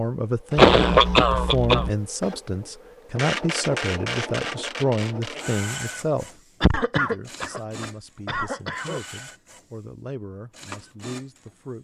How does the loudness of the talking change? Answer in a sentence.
The loudness of the talking goes down.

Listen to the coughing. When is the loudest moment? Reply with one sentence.
The volume of the coughing peaks at 1 second.